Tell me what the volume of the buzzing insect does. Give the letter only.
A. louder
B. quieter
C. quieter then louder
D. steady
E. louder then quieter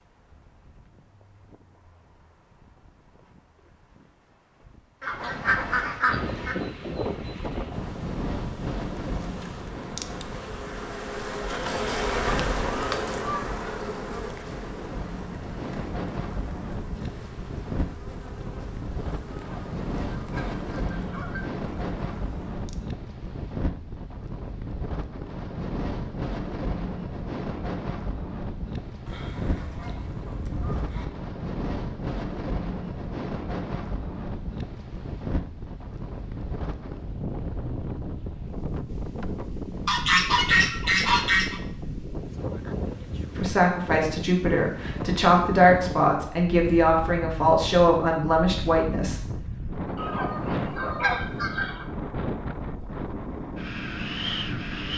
E.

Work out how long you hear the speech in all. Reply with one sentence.
The speech can be heard for 6 seconds in total.